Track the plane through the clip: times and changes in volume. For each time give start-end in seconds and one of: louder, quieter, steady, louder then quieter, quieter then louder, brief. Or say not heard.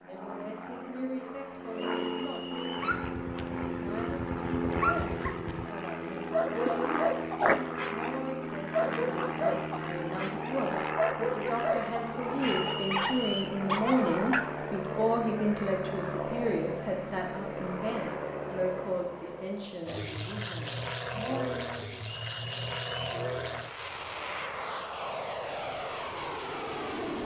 0.0-27.1 steady.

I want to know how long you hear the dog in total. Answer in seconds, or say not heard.
12 s.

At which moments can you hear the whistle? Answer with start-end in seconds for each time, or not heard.
1.8-3.0, 12.3-13.5, 22.0-23.2.